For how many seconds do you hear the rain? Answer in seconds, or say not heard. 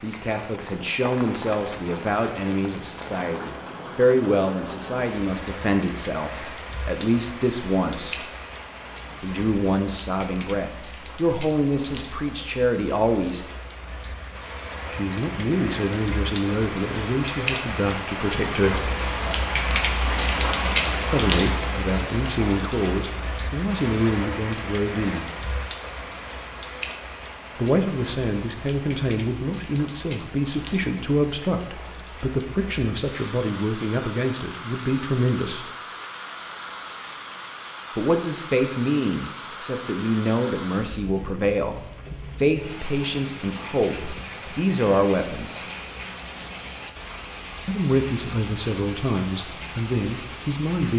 51 s.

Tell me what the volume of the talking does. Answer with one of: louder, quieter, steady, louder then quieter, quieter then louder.
steady.